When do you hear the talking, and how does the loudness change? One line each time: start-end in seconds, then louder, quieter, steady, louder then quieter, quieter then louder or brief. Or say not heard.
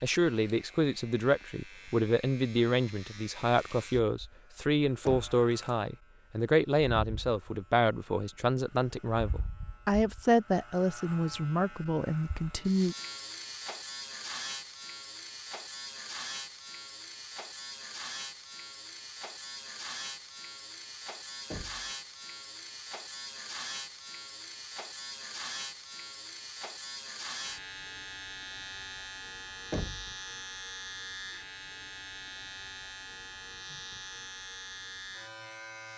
0.0-12.9 steady.